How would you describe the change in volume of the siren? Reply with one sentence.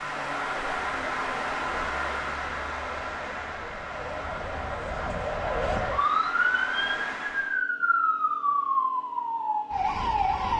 The loudness of the siren goes up.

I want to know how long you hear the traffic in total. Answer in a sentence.
You can hear the traffic for 8 seconds altogether.